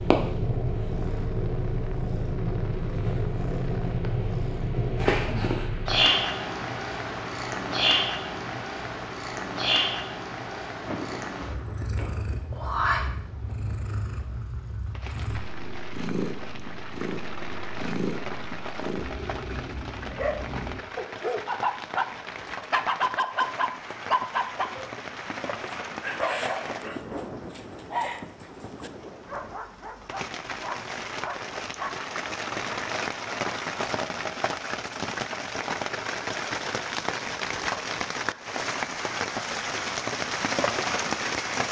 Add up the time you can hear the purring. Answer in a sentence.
The purring can be heard for 21 seconds in total.